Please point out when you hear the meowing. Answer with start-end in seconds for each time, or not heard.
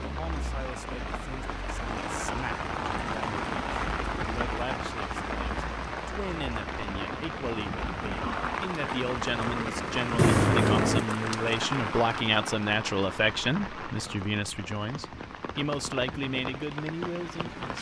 10.2-11.1.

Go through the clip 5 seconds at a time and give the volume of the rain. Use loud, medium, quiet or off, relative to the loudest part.
loud, loud, loud, medium.